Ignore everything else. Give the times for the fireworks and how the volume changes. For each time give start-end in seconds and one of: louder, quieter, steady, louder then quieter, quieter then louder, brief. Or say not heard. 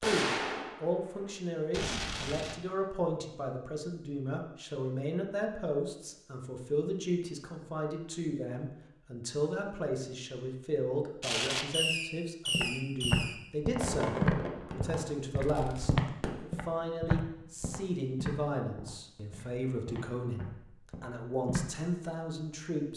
0.0-2.5 brief
11.2-16.7 quieter.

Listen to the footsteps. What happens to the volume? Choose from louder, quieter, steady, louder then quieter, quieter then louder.
quieter.